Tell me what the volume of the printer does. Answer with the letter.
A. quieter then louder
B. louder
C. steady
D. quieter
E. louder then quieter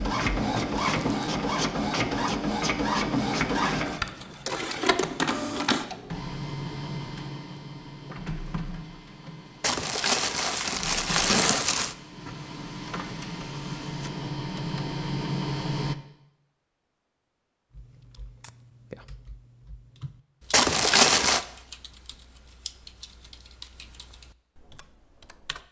A.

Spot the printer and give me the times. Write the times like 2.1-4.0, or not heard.
0.0-15.9.